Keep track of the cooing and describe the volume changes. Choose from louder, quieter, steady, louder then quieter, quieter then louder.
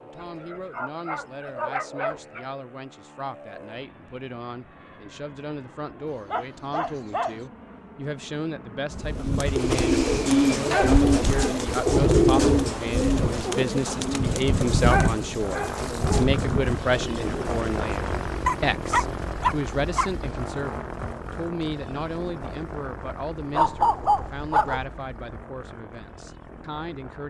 quieter.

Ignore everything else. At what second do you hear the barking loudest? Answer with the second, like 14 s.
24 s.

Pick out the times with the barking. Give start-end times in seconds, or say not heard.
0.1-2.5, 6.2-7.5, 10.6-12.1, 14.7-16.2, 18.4-20.1, 23.5-24.9.